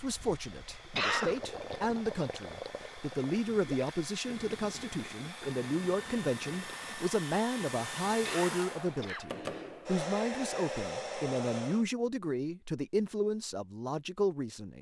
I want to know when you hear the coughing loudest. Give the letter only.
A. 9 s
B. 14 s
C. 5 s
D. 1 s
D.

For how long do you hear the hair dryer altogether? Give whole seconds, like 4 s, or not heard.
12 s.